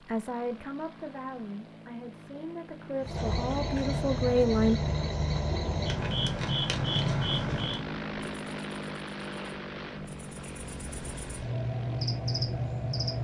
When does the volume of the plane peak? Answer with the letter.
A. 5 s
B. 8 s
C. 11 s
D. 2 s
B.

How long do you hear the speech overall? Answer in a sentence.
The speech can be heard for 5 seconds in total.